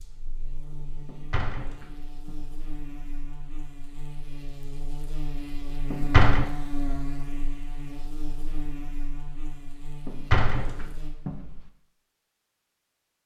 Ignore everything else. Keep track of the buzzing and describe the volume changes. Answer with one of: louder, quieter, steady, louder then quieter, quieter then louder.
louder then quieter.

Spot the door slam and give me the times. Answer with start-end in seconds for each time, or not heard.
1.1-2.4, 5.9-6.5, 10.1-11.6.